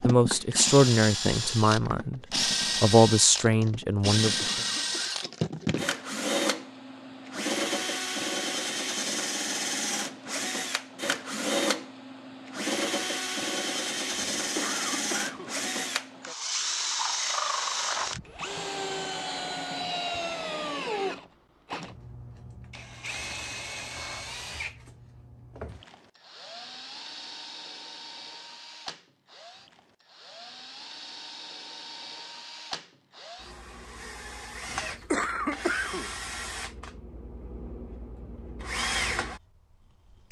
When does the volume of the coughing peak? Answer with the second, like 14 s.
35 s.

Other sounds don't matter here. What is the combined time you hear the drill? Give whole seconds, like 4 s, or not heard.
40 s.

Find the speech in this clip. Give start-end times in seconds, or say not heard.
0.0-2.2, 2.8-4.6.